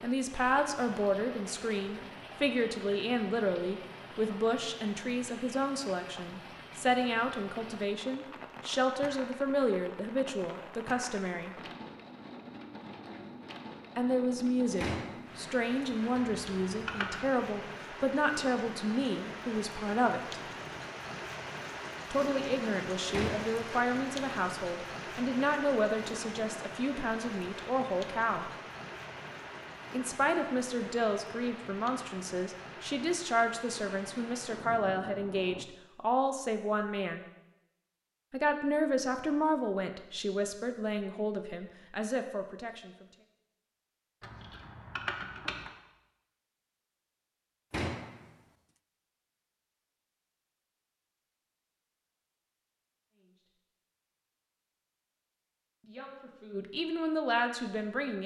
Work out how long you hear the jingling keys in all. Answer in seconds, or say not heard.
3 s.